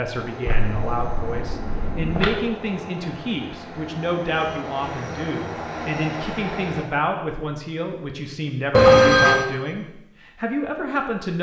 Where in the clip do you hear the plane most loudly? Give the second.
6 s.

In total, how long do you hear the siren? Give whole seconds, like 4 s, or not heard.
not heard.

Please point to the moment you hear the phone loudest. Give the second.
9 s.